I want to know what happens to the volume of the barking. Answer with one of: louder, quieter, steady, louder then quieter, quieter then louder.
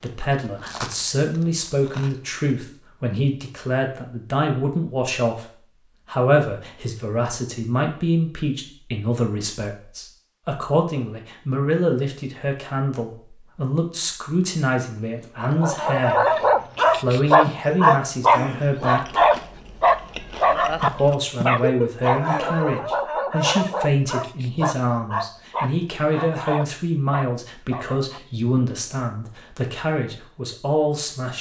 quieter.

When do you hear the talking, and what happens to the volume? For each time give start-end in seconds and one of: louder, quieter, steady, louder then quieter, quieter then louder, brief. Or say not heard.
0.0-19.2 steady
20.8-31.3 steady.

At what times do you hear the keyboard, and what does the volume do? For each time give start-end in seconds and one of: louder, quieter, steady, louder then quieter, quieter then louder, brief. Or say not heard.
not heard.